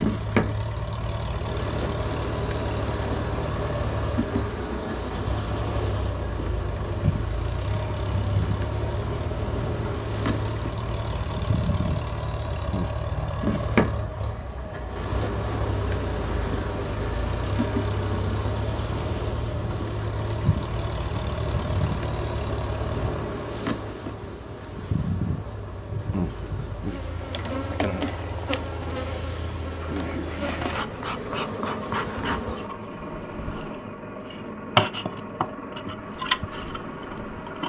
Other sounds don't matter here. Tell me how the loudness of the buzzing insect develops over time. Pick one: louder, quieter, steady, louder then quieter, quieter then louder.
steady.